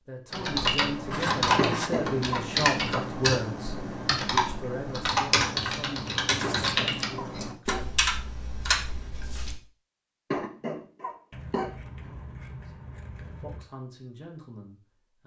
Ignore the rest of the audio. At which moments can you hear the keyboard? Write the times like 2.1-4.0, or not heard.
0.3-9.6.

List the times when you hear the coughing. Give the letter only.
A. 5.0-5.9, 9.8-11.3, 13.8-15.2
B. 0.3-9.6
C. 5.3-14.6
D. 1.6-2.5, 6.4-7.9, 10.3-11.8
D.